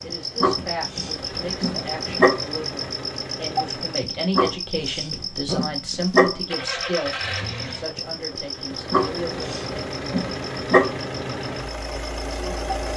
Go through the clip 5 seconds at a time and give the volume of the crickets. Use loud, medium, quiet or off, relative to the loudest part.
loud, loud, medium.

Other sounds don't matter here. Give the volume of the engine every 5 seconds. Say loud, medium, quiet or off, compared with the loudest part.
medium, loud, loud.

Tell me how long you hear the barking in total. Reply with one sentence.
The barking can be heard for 6 seconds in total.